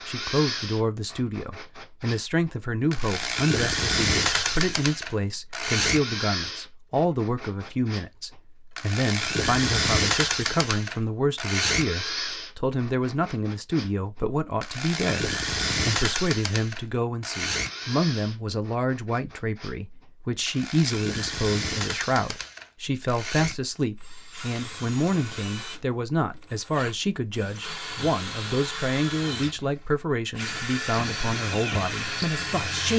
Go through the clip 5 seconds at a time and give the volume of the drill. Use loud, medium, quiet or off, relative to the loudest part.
loud, loud, loud, loud, medium, medium, loud.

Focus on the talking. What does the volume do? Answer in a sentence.
The loudness of the talking stays about the same.